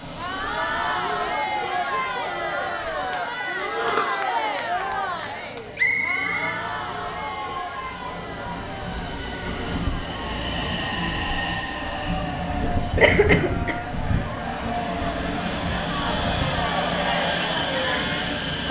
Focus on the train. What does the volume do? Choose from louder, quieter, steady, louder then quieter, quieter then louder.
louder.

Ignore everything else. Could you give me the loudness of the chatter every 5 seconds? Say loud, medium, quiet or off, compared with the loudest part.
loud, medium, medium, loud.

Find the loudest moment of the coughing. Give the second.
13 s.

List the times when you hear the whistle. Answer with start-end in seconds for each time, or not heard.
5.8-6.5.